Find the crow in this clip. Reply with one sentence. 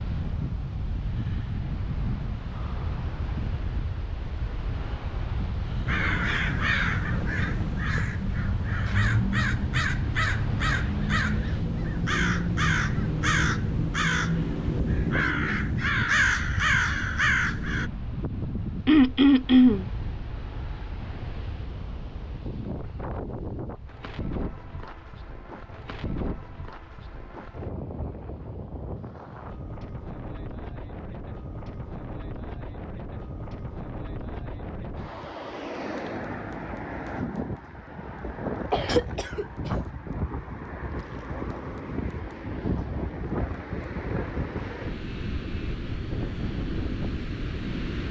You can hear the crow from 5.8 to 17.9 s.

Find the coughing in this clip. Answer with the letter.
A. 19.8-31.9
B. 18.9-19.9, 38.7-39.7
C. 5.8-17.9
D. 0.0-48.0
B.